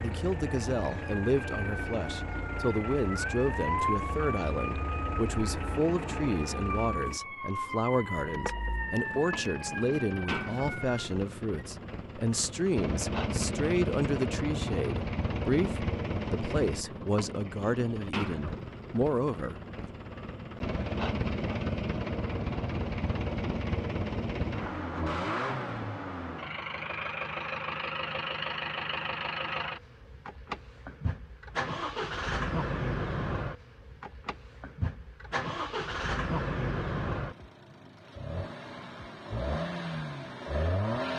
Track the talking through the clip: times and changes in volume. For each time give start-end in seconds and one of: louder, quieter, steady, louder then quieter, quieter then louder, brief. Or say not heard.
0.0-19.9 steady.